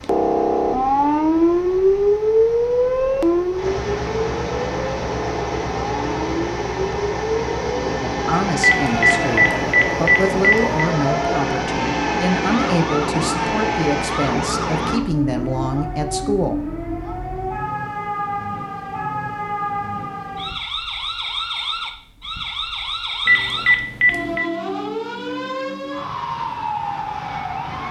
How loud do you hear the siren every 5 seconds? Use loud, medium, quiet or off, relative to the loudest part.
loud, medium, medium, medium, medium, medium.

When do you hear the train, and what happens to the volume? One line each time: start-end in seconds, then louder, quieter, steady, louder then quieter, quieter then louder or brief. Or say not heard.
0.0-15.0 louder.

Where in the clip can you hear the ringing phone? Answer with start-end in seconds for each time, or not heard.
8.6-10.8, 23.2-24.4.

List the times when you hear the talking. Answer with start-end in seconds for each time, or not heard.
8.0-16.6.